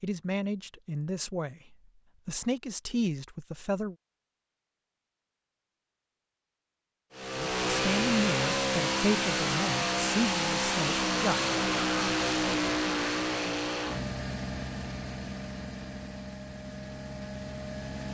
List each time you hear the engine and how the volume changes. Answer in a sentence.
The engine can be heard from 7.1 to 18.0 s, getting quieter.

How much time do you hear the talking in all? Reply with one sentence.
You can hear the talking for 8 seconds altogether.